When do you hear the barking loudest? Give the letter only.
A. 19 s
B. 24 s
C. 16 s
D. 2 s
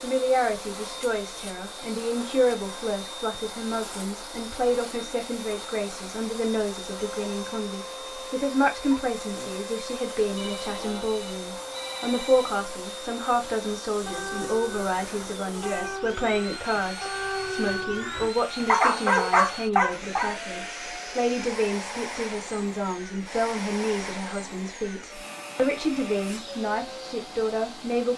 A.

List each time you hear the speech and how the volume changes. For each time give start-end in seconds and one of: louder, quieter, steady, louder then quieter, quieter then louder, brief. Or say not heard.
0.0-28.1 steady.